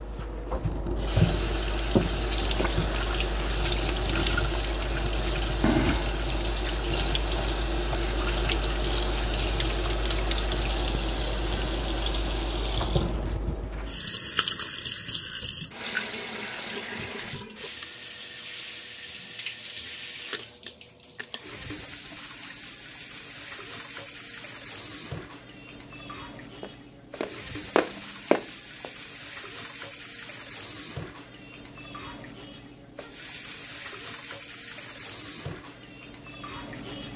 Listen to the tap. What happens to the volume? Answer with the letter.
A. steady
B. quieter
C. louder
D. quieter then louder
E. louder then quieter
B.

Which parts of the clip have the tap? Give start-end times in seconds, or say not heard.
0.0-37.1.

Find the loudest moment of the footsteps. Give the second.
28 s.